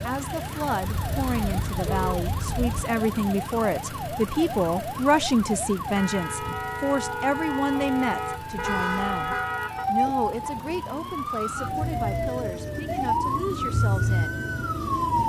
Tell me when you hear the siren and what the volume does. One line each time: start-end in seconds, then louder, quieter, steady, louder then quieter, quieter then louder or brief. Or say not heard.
0.1-15.2 louder.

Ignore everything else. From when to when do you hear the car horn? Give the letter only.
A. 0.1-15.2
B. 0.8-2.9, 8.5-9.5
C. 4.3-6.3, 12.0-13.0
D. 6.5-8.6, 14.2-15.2
B.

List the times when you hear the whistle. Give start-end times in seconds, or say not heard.
not heard.